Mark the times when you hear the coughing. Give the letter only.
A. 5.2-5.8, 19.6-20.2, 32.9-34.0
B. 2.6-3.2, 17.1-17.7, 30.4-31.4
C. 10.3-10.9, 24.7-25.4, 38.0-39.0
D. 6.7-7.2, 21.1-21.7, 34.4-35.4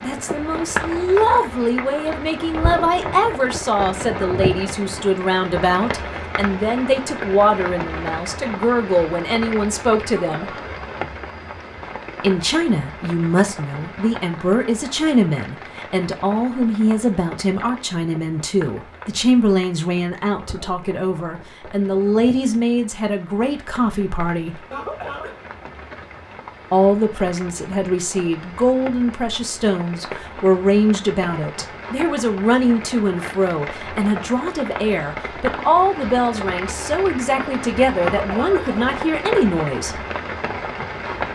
C.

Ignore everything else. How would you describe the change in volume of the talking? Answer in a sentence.
The volume of the talking stays about the same.